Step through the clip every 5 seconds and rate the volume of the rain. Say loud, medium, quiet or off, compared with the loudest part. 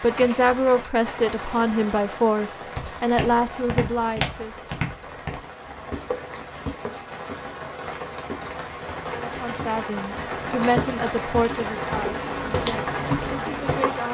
medium, medium, loud.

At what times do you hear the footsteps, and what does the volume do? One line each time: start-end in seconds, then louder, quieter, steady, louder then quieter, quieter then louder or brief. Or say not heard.
2.8-13.9 quieter then louder.